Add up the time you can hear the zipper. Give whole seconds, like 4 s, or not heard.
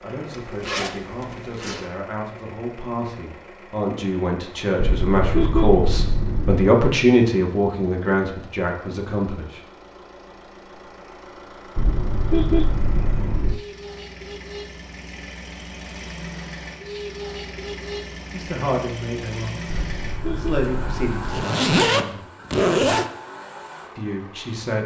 3 s.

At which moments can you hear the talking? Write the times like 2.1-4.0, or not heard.
0.0-9.6, 18.3-22.2, 23.9-24.8.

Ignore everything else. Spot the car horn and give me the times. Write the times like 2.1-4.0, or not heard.
4.8-6.7, 11.8-13.6, 19.6-21.4.